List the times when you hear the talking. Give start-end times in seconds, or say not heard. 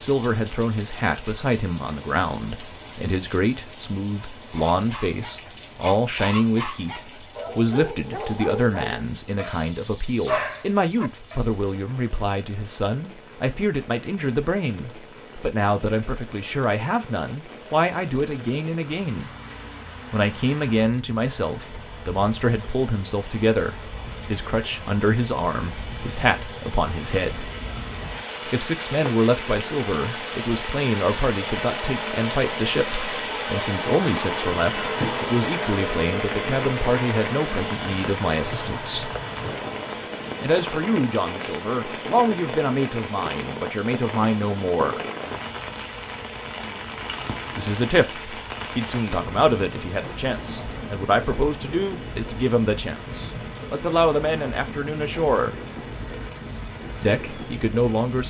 0.0-19.4, 20.1-27.4, 28.4-39.1, 40.4-45.0, 47.5-55.5, 57.0-58.2.